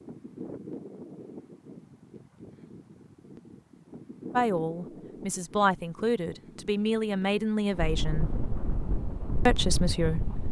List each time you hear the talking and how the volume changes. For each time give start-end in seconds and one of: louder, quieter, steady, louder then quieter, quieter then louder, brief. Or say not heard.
4.3-8.3 louder
9.4-10.4 brief.